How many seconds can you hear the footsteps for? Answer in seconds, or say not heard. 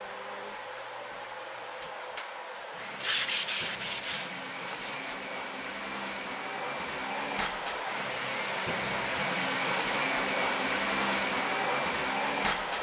not heard.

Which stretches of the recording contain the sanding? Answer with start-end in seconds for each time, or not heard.
3.0-5.2.